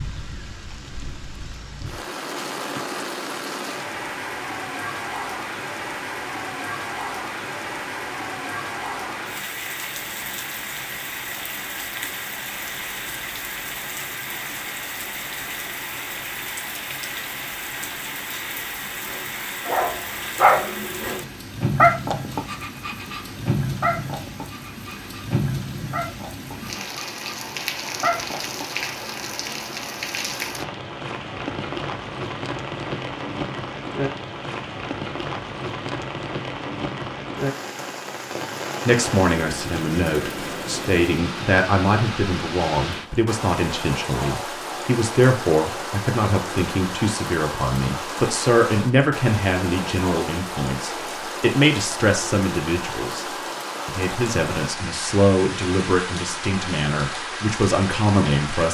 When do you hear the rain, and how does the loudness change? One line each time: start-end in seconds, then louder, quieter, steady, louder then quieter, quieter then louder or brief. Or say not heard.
0.0-58.6 steady.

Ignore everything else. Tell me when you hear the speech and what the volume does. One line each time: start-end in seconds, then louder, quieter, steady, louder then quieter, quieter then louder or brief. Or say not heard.
38.9-58.6 steady.